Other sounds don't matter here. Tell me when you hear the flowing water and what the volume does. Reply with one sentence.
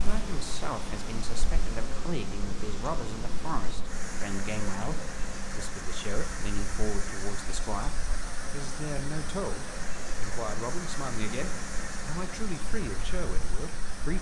You can hear the flowing water from 0.0 to 14.1 s, at a steady volume.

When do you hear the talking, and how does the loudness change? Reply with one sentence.
You can hear the talking from 0.0 to 14.1 s, at a steady volume.